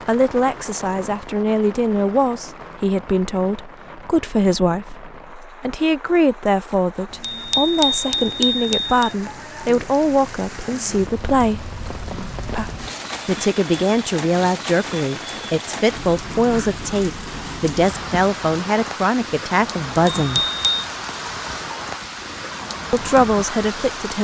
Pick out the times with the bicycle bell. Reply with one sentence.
The bicycle bell can be heard from 7.2 to 9.1 s and from 20.1 to 20.6 s.